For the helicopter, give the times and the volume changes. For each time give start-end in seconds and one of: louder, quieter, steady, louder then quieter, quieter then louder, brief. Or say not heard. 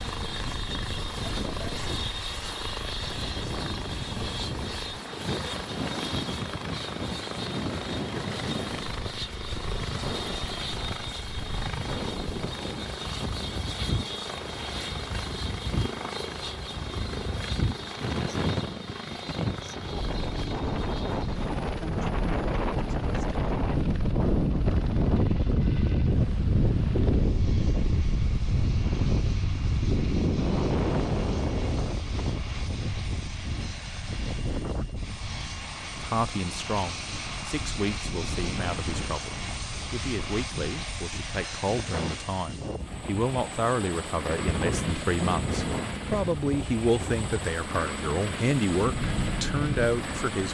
0.0-50.4 quieter then louder.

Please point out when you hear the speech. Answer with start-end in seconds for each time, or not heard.
36.0-50.4.